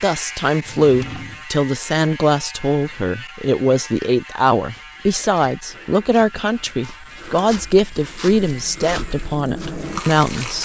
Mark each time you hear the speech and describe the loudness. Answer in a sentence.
You can hear the speech from 0.0 to 10.6 s, at a steady volume.